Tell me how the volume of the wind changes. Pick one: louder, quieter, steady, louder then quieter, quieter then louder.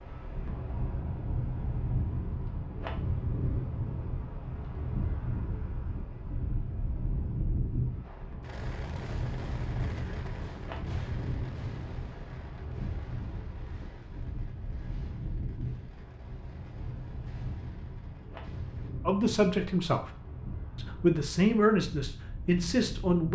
quieter.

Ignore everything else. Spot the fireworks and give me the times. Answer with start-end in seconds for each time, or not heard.
8.0-18.9.